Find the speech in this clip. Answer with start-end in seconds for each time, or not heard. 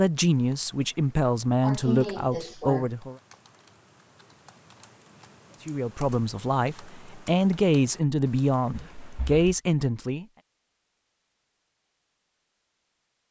0.0-3.1, 5.7-10.2.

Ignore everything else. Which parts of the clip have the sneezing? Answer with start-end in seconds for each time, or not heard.
1.6-2.9, 8.7-9.4.